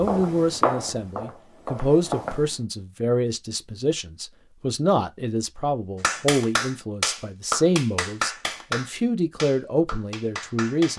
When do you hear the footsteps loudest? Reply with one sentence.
The loudest moment of the footsteps is at 1 second.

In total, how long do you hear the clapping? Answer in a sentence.
The clapping can be heard for 5 seconds in total.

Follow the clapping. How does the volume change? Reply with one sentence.
The volume of the clapping goes down.